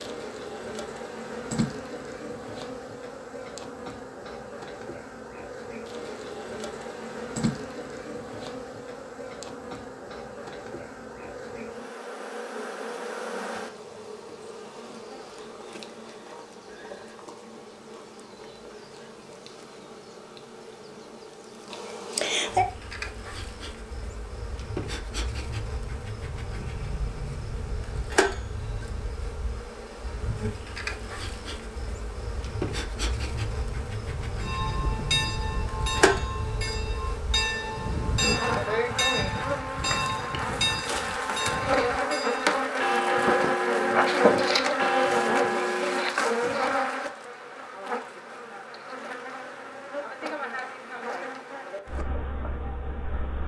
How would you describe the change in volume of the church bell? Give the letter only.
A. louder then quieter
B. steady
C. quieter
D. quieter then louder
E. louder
B.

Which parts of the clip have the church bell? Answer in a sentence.
The church bell can be heard from 34.4 to 46.1 s.